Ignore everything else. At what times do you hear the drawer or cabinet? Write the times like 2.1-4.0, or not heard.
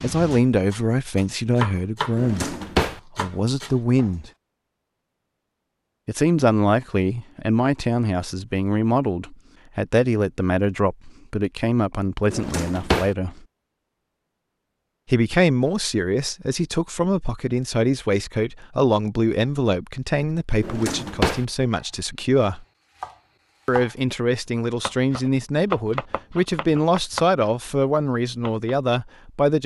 2.1-3.0, 12.3-13.1, 20.6-21.4.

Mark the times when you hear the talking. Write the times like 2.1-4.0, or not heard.
0.0-2.5, 3.1-4.3, 6.0-13.4, 15.1-22.6, 23.6-29.6.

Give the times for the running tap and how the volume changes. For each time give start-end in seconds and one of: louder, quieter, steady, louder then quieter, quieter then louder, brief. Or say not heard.
not heard.